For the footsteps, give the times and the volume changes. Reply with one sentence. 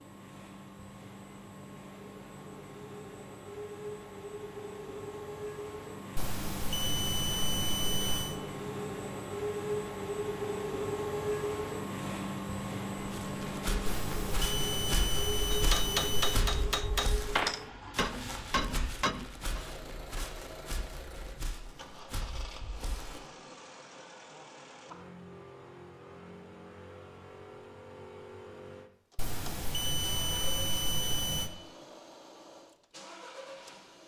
You can hear the footsteps from 12.9 to 23.2 s, getting quieter.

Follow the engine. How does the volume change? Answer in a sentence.
The loudness of the engine goes up, then down.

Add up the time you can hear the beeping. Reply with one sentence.
You can hear the beeping for 7 seconds altogether.